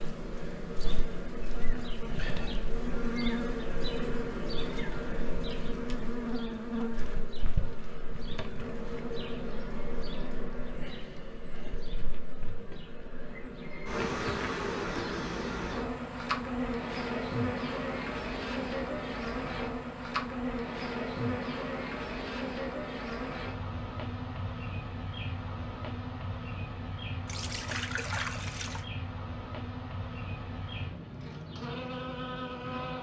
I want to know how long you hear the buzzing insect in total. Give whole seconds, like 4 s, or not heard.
33 s.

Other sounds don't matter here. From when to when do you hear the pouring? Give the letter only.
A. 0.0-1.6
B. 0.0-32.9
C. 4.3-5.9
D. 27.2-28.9
D.